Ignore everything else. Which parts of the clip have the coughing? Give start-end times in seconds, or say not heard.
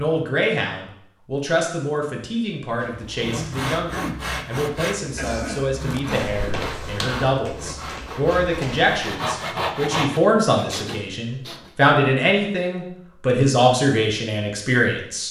5.2-6.3.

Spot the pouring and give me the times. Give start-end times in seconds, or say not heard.
not heard.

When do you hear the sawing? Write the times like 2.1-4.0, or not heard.
2.8-11.9.